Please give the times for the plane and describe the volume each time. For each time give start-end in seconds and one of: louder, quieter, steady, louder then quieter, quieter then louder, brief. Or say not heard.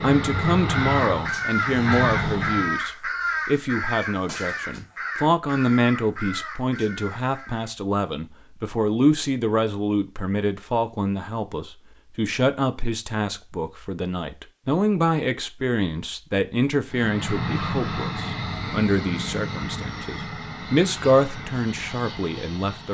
0.0-2.8 brief
16.9-22.8 quieter.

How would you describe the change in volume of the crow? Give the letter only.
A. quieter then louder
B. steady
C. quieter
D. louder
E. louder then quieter
C.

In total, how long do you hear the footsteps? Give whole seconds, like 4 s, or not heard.
not heard.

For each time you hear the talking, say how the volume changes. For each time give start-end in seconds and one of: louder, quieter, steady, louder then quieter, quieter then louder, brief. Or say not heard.
0.0-22.8 steady.